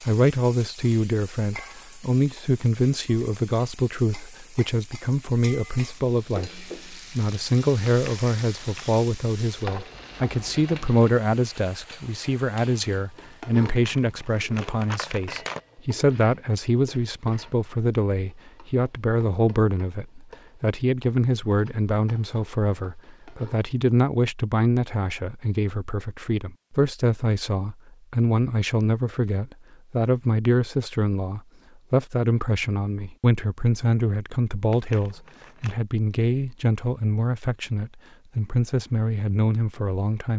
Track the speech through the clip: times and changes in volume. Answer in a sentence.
The speech can be heard from 0.0 to 40.3 s, at a steady volume.